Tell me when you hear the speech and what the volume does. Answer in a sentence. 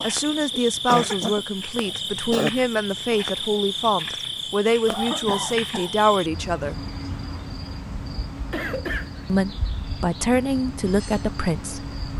The speech can be heard from 0.0 to 6.8 s, at a steady volume; and briefly from 9.2 to 12.1 s.